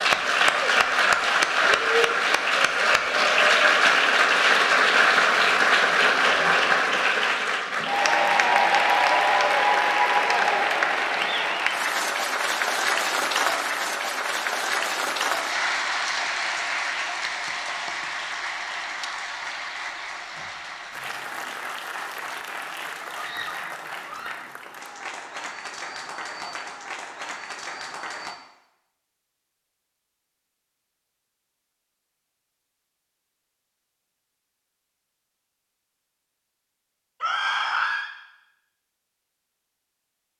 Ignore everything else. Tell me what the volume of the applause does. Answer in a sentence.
The volume of the applause goes down.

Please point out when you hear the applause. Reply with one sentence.
You can hear the applause from 0.0 to 28.4 s.